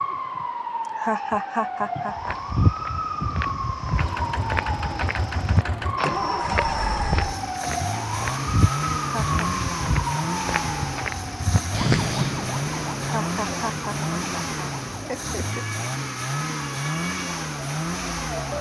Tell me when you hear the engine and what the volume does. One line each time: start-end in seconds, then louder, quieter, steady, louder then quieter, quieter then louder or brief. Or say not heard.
3.9-18.5 steady.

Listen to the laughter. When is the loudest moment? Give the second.
1 s.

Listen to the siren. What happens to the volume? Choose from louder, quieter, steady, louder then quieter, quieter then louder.
quieter.